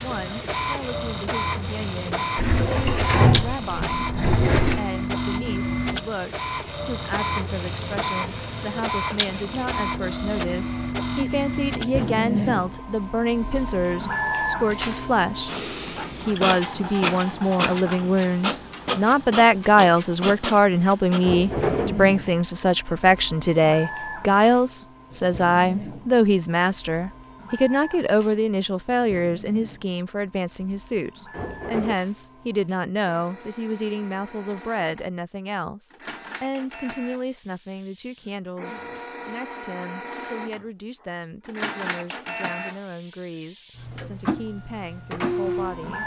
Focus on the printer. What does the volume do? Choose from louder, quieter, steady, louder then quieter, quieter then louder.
quieter then louder.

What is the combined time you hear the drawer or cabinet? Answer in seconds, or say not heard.
4 s.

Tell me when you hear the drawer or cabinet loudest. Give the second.
3 s.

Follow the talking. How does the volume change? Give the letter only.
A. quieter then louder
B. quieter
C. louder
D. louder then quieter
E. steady
D.